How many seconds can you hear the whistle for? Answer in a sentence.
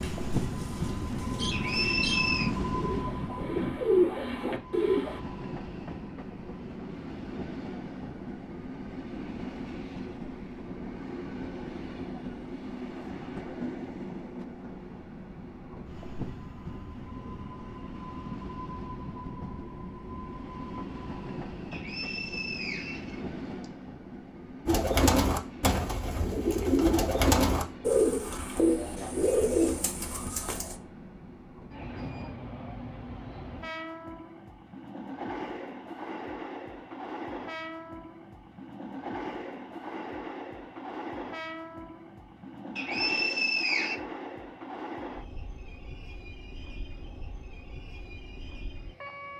The whistle can be heard for 4 seconds in total.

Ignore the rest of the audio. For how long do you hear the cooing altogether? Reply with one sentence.
You can hear the cooing for 11 seconds altogether.